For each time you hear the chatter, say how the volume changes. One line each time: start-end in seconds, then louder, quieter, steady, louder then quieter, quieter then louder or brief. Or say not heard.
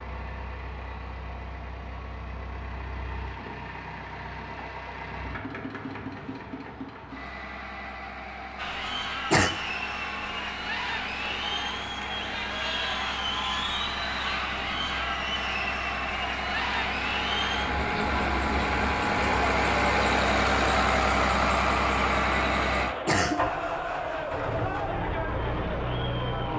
8.6-26.5 steady.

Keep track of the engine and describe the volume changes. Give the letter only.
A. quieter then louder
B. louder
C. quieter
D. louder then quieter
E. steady
B.